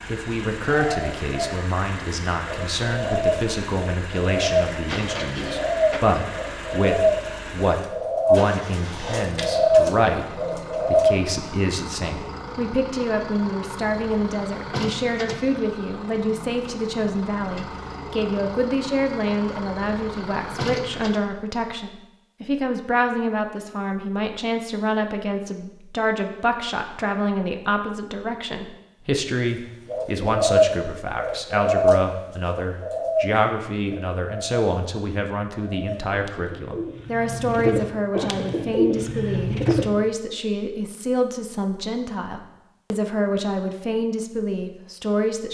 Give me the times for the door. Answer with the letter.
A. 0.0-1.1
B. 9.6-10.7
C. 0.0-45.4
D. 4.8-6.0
D.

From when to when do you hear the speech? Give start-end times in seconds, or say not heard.
0.0-45.4.